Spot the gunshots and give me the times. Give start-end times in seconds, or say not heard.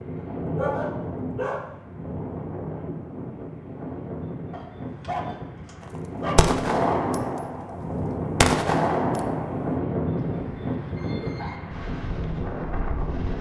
5.8-9.8.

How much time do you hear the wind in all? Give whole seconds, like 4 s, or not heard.
13 s.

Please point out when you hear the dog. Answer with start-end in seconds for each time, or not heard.
0.2-1.6, 4.5-6.5, 10.2-11.6.